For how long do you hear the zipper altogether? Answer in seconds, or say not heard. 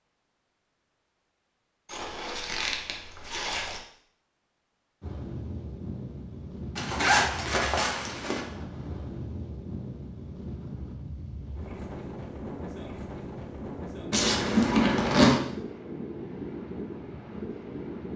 5 s.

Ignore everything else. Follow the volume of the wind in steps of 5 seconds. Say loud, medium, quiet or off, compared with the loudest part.
off, loud, loud, loud.